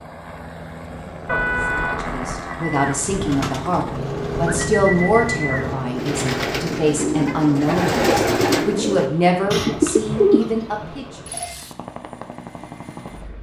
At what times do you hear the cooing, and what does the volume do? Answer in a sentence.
The cooing can be heard from 2.7 to 11.1 s, getting louder.